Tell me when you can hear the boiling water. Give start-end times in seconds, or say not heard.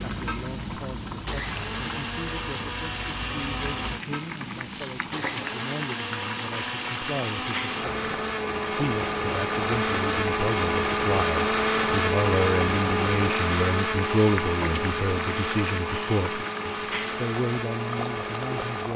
0.0-18.9.